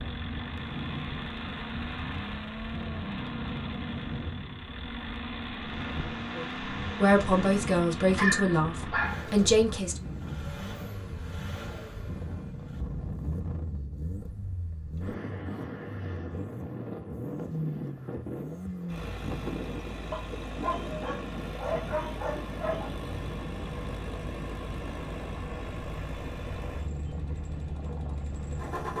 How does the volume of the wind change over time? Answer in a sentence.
The loudness of the wind stays about the same.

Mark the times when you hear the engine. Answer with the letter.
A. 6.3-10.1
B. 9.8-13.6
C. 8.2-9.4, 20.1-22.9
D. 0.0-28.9
D.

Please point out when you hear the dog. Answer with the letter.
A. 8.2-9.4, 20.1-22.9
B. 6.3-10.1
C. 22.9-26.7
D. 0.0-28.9
A.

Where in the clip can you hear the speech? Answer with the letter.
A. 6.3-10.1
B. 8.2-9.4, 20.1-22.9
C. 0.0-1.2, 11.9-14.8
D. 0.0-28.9
A.